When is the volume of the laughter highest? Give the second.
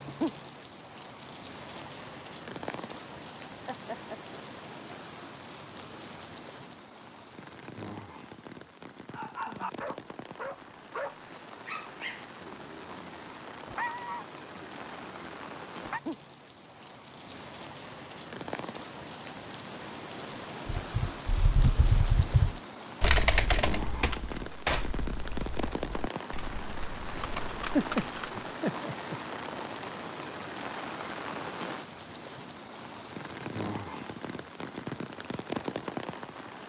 28 s.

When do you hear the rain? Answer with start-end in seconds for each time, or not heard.
0.0-36.6.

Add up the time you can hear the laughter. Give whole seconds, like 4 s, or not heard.
2 s.